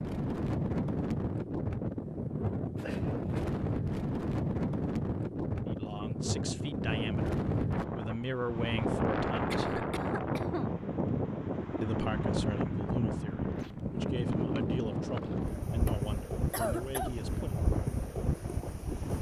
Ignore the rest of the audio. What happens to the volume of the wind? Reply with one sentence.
The loudness of the wind stays about the same.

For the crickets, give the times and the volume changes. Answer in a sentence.
You can't hear the crickets here.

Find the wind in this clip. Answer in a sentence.
The wind can be heard from 0.0 to 19.1 s.